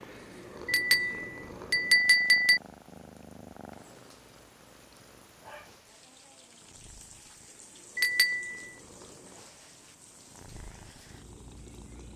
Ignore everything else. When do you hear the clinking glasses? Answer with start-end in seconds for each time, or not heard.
0.7-2.6, 8.0-8.6.